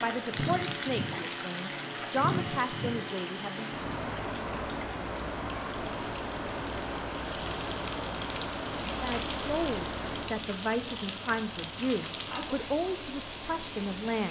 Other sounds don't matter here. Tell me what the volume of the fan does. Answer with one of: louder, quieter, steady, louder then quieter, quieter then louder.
quieter.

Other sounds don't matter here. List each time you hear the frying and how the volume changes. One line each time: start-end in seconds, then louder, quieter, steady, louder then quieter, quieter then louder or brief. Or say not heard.
0.0-14.2 quieter then louder.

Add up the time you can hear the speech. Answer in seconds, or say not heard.
9 s.